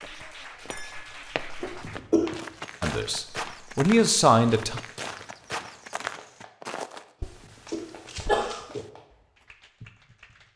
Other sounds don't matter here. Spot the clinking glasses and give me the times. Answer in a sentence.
The clinking glasses can be heard from 0.7 to 1.1 s.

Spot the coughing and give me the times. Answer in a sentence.
You can hear the coughing from 1.6 to 2.4 s and from 7.2 to 8.8 s.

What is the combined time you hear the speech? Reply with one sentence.
The speech can be heard for 2 seconds in total.